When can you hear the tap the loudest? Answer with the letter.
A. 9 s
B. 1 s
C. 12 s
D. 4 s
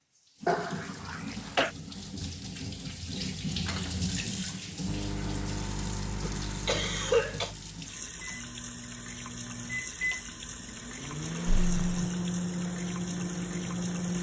D.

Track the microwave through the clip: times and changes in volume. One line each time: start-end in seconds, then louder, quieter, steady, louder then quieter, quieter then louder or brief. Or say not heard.
4.8-14.1 quieter then louder.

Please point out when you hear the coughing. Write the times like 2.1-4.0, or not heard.
0.5-1.7, 6.2-7.5, 11.4-12.1.